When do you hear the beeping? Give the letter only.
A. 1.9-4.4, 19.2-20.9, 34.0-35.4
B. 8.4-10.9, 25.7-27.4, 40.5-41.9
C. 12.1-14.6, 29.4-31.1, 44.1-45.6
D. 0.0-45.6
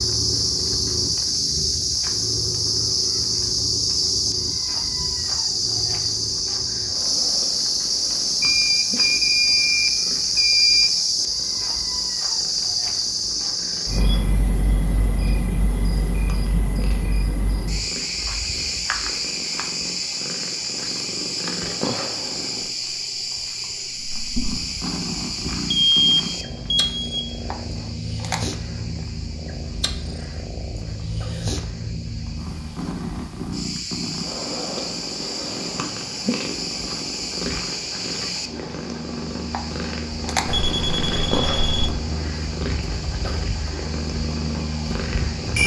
B.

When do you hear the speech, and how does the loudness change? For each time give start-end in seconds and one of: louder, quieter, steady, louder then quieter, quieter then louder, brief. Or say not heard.
not heard.